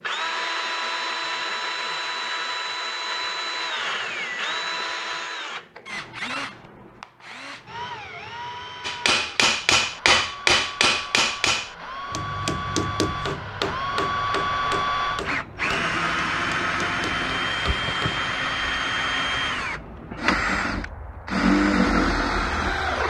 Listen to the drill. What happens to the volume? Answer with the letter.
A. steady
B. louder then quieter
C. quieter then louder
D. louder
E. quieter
C.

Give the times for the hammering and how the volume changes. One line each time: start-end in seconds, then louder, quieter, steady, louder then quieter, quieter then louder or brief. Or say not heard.
8.8-18.3 quieter.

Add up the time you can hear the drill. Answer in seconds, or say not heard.
23 s.